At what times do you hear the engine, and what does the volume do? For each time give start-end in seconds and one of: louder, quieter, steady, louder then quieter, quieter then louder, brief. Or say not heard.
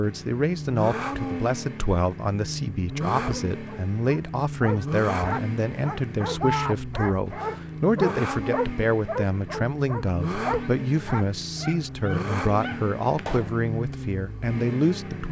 0.0-15.2 steady.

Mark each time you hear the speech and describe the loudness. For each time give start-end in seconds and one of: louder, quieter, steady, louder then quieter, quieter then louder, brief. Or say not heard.
0.0-15.2 steady.